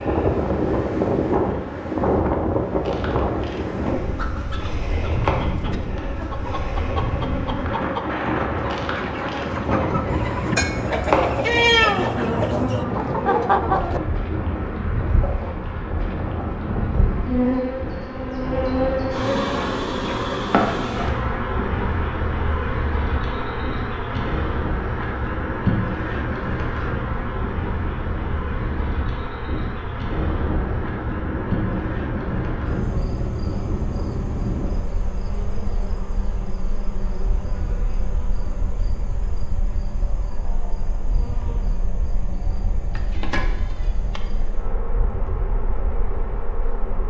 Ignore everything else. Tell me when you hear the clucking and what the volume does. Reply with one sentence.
You can hear the clucking from 4.0 to 14.0 s, getting louder.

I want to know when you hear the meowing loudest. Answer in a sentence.
The loudest moment of the meowing is at 12 seconds.